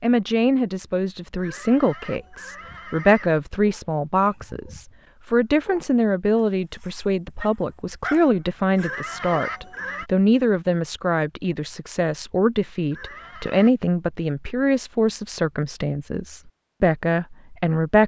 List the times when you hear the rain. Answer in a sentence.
The rain can't be heard in this clip.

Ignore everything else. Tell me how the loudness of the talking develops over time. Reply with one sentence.
The loudness of the talking stays about the same.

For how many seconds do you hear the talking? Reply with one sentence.
The talking can be heard for 18 seconds in total.